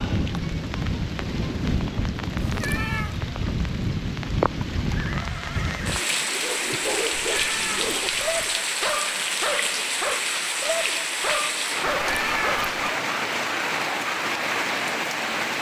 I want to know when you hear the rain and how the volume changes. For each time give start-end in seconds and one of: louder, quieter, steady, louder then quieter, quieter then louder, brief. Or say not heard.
0.0-15.5 steady.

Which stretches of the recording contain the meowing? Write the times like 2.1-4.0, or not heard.
2.4-3.2, 7.1-8.7, 11.8-12.8.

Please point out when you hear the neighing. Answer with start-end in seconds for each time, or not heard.
4.9-6.8.